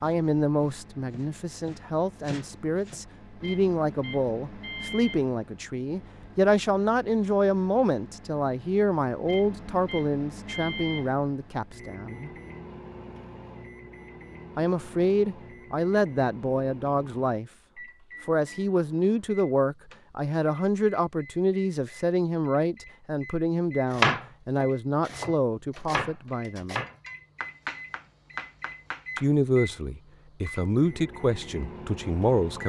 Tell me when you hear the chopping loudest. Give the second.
24 s.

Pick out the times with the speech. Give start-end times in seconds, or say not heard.
0.0-12.3, 14.6-17.5, 18.2-26.9, 29.1-32.6.